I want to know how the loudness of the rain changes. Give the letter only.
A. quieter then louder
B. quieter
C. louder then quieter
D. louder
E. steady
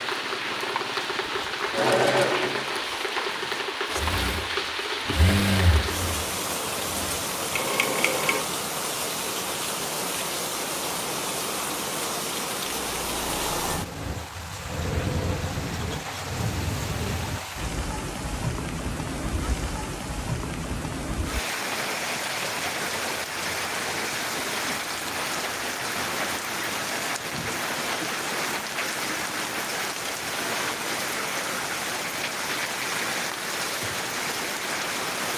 E.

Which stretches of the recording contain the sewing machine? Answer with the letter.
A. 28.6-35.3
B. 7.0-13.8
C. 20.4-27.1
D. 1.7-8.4
D.